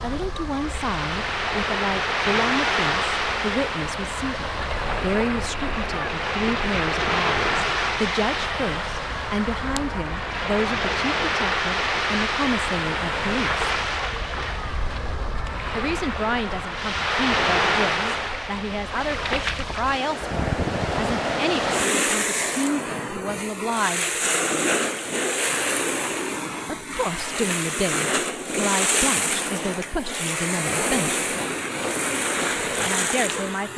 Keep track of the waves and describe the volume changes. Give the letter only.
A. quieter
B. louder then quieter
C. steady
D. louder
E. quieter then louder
C.